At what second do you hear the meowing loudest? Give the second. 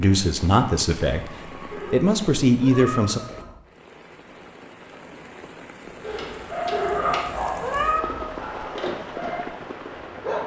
8 s.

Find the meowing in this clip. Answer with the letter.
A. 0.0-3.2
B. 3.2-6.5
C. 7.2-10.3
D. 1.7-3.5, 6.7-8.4
D.